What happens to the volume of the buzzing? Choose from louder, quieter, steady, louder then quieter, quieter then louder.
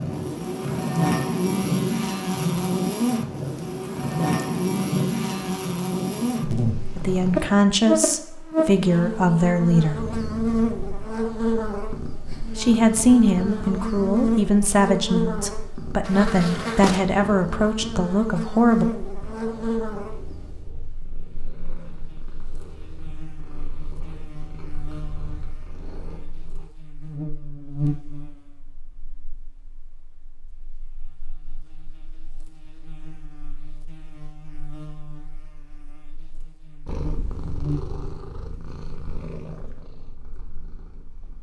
quieter.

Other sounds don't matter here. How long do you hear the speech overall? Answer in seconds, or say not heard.
9 s.